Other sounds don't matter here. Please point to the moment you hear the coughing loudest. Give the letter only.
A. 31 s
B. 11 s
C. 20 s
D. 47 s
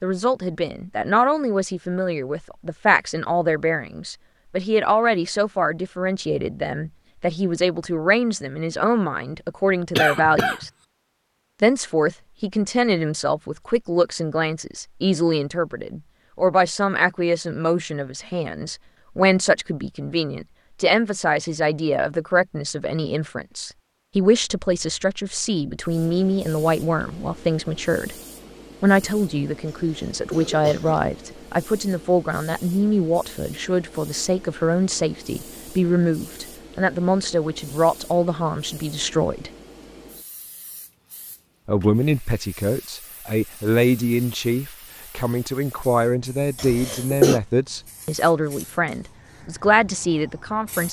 D.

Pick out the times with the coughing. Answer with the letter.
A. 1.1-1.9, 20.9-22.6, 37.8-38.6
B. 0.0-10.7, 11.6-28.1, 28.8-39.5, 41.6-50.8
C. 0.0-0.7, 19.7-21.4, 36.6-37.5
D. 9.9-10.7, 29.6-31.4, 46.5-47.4
D.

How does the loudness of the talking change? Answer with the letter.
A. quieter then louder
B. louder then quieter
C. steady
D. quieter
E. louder
C.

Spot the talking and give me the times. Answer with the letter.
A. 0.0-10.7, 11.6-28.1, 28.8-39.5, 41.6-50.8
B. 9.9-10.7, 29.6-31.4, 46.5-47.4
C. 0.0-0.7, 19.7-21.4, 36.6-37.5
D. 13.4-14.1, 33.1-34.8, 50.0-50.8
A.